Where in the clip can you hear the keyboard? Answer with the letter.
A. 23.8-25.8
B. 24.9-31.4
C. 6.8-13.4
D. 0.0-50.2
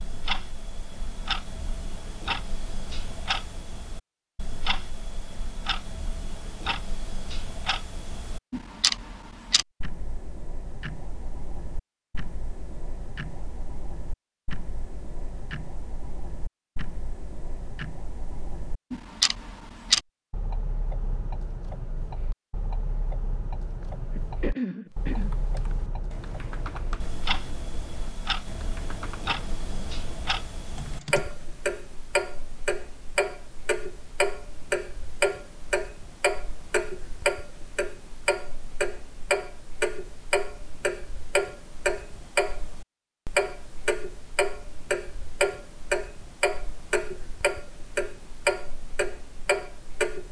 B.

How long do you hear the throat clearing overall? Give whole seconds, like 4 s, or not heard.
2 s.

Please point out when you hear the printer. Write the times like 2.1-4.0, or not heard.
not heard.